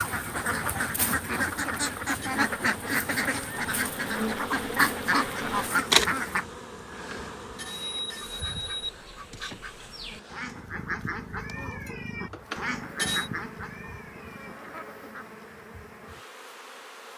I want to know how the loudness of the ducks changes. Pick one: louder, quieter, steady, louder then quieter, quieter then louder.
quieter.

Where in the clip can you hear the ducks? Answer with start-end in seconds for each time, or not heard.
0.0-6.5, 7.9-15.3.